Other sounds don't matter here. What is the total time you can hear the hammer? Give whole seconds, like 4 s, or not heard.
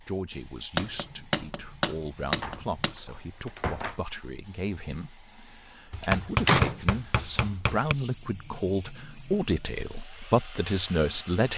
4 s.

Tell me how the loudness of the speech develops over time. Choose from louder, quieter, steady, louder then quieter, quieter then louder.
louder.